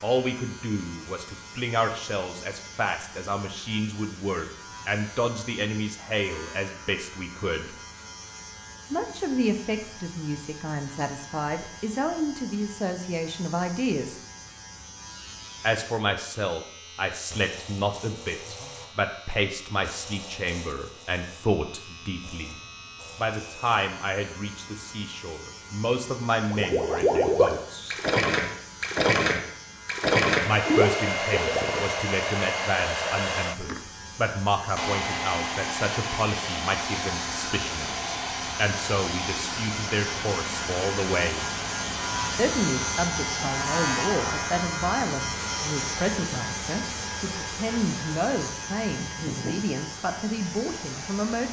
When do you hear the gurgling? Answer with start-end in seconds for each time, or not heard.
26.5-31.9.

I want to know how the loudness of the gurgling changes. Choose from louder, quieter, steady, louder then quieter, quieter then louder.
steady.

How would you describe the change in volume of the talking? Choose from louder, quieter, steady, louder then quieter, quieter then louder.
steady.